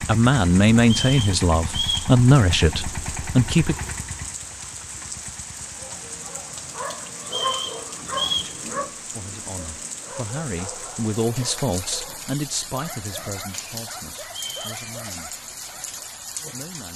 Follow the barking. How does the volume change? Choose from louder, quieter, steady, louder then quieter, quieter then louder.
quieter.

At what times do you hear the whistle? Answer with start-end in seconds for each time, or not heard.
0.8-2.1, 7.2-8.6, 14.4-14.8.